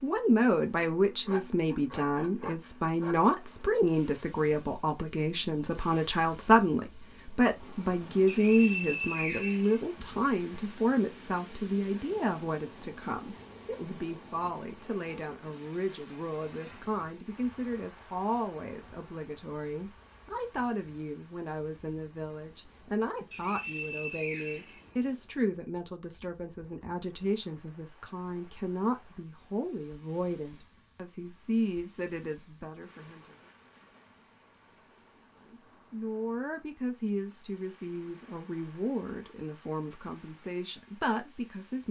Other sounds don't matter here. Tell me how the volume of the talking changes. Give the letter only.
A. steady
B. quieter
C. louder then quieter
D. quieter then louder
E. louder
B.